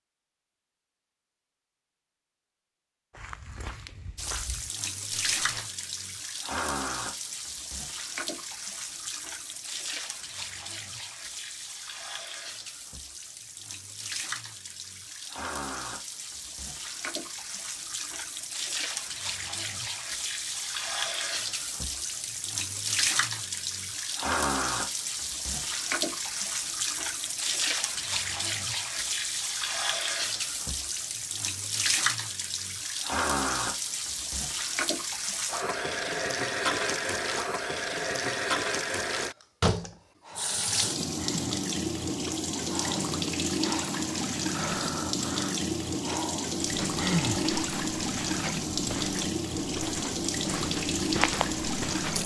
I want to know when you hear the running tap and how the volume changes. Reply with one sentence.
The running tap can be heard from 4.2 to 52.2 s, getting louder.